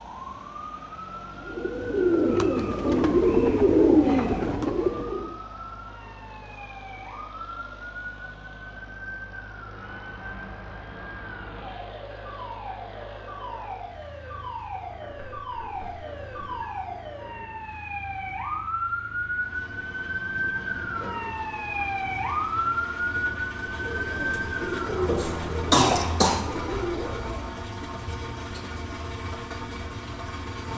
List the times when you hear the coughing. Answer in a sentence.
You can hear the coughing from 25.1 to 26.4 s.